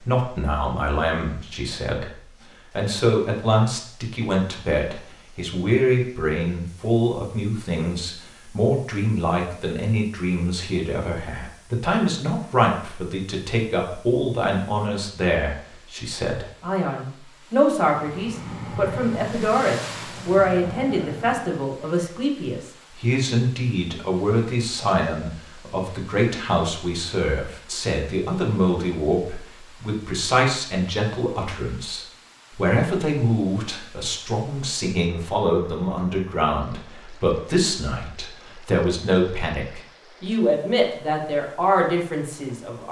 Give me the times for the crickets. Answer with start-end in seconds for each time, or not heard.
not heard.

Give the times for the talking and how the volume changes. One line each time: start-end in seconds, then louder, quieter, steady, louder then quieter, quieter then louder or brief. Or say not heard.
0.0-42.8 steady.